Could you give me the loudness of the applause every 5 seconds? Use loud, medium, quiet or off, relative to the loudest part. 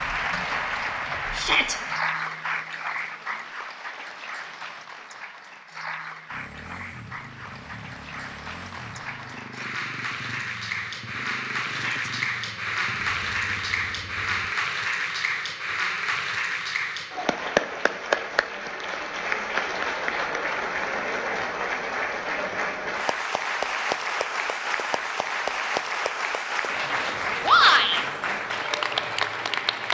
loud, medium, loud, loud, loud, loud.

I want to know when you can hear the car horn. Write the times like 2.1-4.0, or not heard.
not heard.